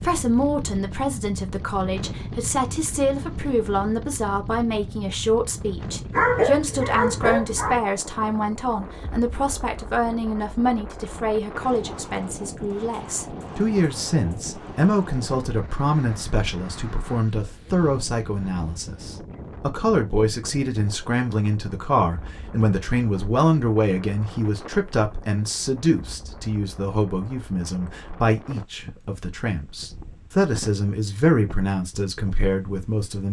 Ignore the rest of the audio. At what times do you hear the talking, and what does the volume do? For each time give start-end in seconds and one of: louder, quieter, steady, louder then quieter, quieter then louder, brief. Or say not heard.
0.0-33.2 steady.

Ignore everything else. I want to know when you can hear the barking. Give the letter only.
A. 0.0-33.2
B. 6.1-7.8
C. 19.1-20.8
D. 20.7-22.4
B.